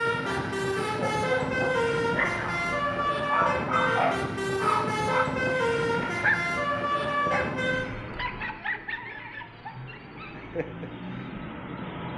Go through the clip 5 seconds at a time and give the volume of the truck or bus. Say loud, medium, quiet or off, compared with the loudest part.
loud, loud, medium.